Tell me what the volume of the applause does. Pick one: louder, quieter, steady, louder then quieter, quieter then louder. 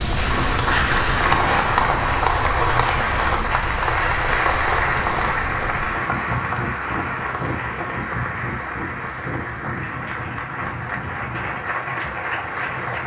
quieter.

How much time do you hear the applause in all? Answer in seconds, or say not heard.
13 s.